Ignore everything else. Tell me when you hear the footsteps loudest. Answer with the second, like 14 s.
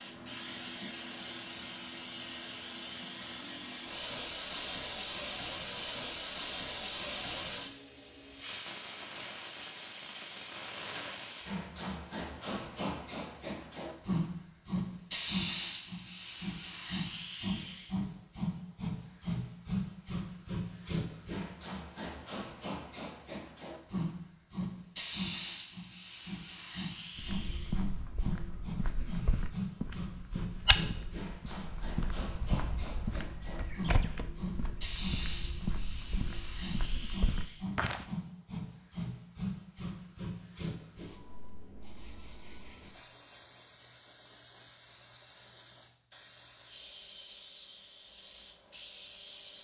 31 s.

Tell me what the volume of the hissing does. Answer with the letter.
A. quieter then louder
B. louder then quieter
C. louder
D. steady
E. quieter
E.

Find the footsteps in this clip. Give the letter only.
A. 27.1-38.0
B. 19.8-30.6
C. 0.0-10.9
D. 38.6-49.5
A.